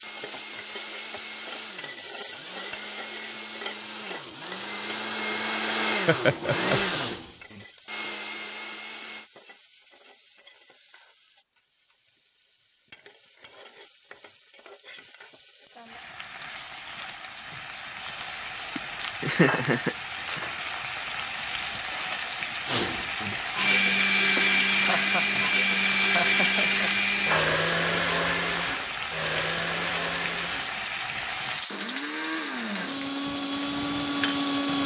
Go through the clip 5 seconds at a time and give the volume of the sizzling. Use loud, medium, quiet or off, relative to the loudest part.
medium, quiet, quiet, medium, loud, loud, loud.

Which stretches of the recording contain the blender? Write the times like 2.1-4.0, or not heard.
0.0-9.3, 22.6-34.8.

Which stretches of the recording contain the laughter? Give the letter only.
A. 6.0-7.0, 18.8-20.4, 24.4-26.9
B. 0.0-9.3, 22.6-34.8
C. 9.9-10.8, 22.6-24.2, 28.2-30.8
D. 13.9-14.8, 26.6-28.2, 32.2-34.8
A.